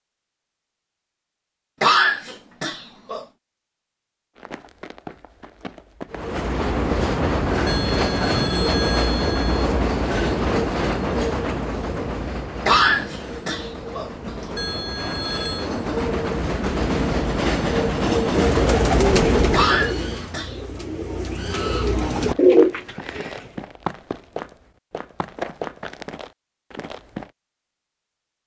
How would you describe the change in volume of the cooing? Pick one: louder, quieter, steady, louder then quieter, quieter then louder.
quieter then louder.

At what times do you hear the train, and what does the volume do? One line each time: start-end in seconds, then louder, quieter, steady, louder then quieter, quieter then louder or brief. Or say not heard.
6.1-19.9 quieter then louder.